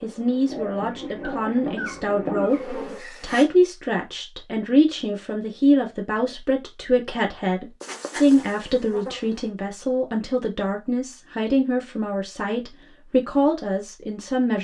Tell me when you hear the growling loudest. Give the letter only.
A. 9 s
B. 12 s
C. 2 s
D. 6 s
C.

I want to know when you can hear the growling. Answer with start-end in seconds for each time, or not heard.
0.5-2.6.